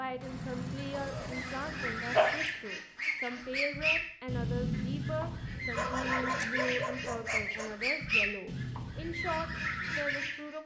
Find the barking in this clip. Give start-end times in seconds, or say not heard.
0.9-2.5, 5.8-7.8.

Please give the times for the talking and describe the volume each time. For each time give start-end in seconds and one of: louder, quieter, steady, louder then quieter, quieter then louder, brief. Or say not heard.
0.0-10.6 steady.